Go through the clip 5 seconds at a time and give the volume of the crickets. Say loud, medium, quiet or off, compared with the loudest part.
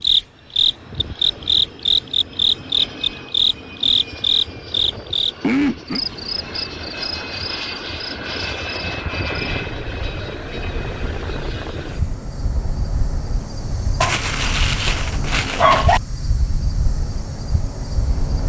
loud, medium, quiet, quiet.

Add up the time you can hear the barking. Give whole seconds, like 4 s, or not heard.
2 s.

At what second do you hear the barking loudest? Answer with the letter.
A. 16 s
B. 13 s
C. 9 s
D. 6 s
A.